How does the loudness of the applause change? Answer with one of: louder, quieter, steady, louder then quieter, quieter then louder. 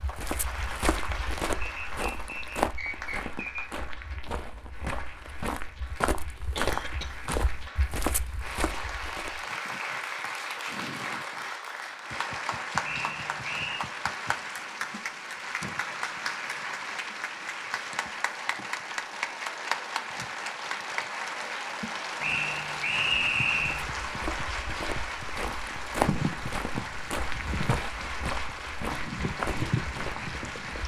louder.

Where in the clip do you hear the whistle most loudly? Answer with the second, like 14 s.
23 s.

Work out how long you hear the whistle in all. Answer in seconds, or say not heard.
5 s.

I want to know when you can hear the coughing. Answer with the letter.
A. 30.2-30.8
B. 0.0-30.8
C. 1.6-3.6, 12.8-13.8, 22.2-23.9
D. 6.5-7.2
D.